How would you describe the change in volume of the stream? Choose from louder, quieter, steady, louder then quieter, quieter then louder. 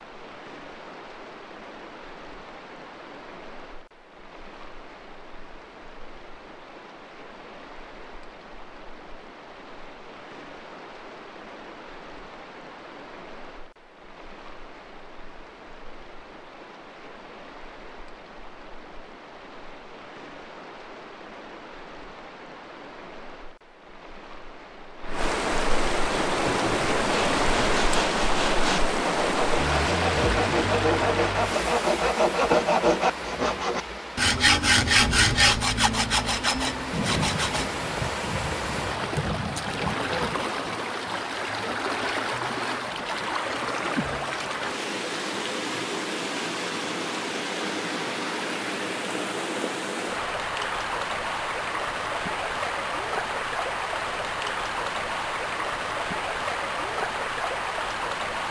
louder.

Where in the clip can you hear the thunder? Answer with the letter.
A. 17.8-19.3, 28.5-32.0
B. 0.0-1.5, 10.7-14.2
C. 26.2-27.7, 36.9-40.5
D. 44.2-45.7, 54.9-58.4
C.